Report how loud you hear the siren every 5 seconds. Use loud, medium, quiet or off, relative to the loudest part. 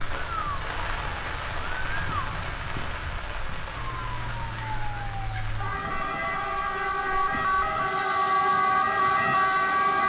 quiet, loud.